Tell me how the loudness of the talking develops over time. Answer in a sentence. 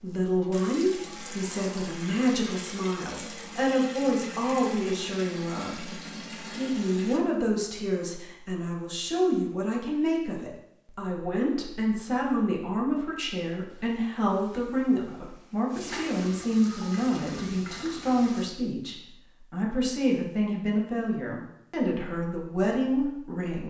The loudness of the talking stays about the same.